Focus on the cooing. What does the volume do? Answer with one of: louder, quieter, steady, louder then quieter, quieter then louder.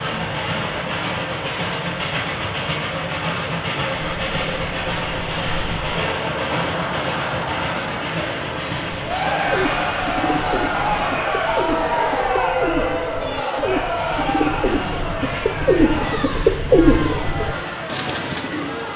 louder.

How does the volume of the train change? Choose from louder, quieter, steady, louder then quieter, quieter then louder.
quieter.